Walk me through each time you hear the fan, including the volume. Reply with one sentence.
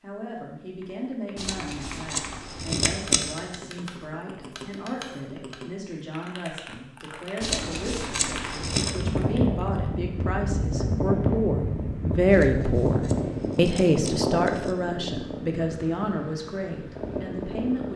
The fan can be heard from 8.8 to 17.9 s, getting quieter.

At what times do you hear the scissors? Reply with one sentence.
The scissors can be heard from 1.4 to 3.5 s, from 7.4 to 8.9 s and from 12.3 to 14.8 s.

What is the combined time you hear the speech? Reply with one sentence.
The speech can be heard for 18 seconds in total.